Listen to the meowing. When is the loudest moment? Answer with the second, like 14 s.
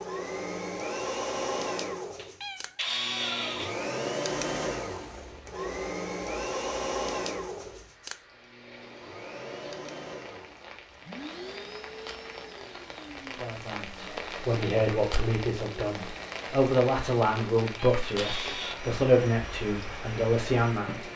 3 s.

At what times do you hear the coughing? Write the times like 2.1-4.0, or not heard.
not heard.